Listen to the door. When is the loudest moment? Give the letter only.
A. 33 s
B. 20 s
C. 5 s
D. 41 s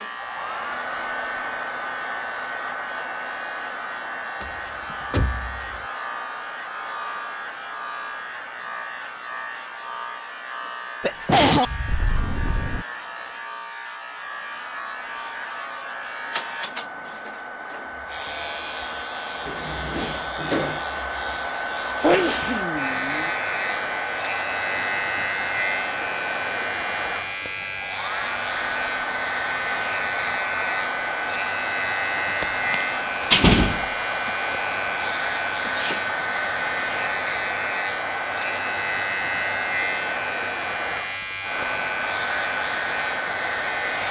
A.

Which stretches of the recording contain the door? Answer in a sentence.
You can hear the door from 4.4 to 5.8 s, from 19.4 to 20.9 s and from 32.4 to 33.8 s.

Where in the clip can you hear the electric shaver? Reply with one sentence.
You can hear the electric shaver from 0.0 to 44.0 s.